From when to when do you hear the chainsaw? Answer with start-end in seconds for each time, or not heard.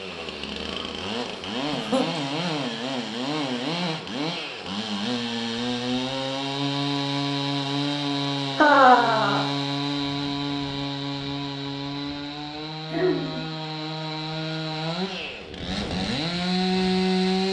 0.0-17.4.